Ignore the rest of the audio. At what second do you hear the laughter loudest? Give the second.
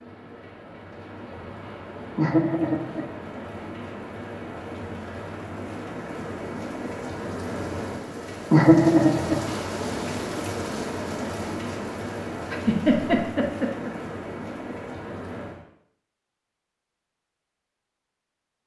9 s.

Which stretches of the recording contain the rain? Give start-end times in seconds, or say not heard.
0.0-15.7.